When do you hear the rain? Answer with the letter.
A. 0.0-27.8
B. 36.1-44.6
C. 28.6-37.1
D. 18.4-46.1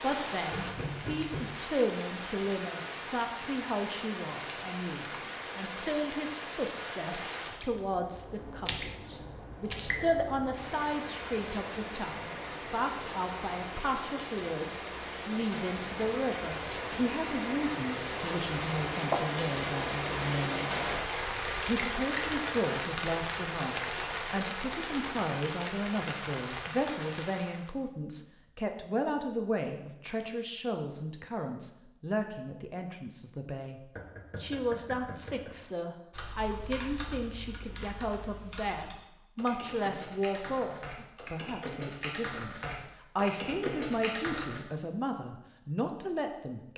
A.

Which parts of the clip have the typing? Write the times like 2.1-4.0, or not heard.
36.1-44.6.